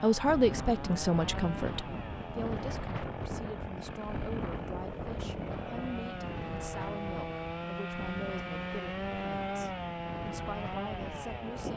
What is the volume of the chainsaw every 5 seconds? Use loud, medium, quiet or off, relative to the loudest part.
medium, loud, loud.